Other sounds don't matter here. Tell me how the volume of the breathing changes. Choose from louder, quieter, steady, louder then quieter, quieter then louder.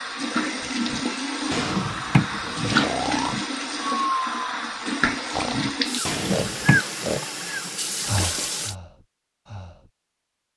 quieter.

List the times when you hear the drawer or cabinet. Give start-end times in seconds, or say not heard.
1.5-2.9, 6.0-6.8.